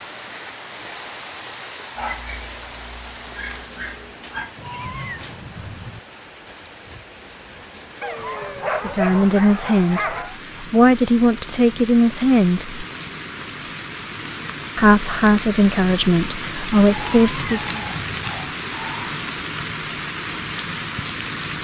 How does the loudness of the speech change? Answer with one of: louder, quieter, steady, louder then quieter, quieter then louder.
steady.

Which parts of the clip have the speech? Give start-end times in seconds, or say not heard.
8.8-12.8, 14.8-17.8.